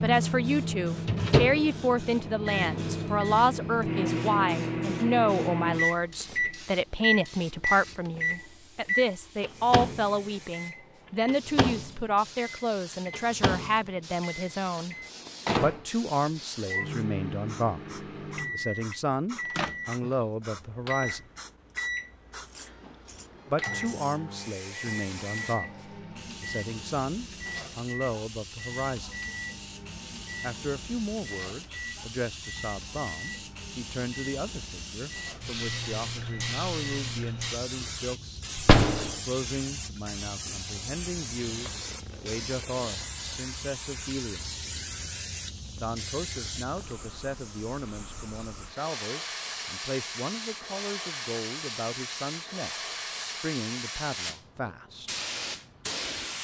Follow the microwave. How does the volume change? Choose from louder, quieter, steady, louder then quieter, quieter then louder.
quieter.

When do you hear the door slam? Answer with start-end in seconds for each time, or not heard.
38.5-39.1.